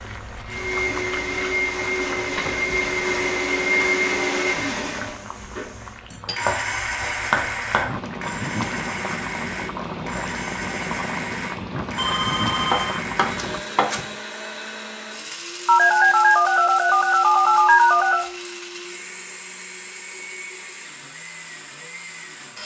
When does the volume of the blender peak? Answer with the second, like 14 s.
4 s.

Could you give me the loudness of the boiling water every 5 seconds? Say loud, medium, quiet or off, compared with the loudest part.
medium, loud, loud, off, off.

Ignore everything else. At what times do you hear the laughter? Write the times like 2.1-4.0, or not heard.
not heard.